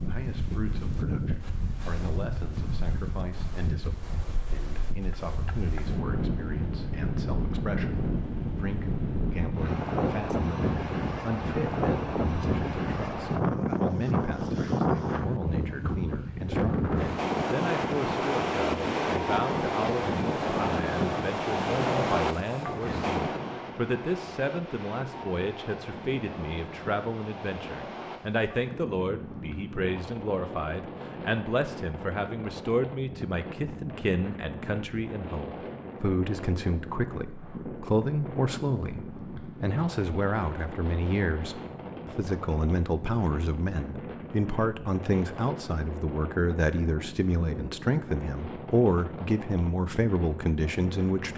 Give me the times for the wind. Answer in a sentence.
You can hear the wind from 0.0 to 51.3 s.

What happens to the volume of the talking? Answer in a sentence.
The volume of the talking goes up.